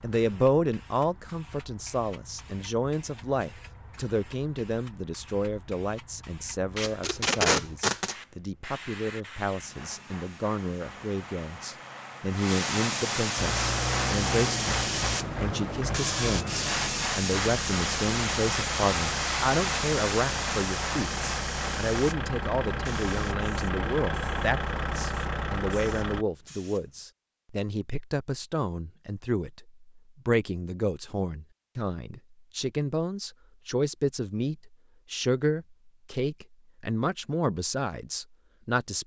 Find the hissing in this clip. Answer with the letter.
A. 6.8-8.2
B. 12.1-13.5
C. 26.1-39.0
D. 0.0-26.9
D.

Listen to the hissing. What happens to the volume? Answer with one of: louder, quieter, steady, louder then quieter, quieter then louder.
louder then quieter.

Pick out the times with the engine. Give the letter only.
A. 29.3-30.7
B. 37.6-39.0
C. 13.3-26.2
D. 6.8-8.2
C.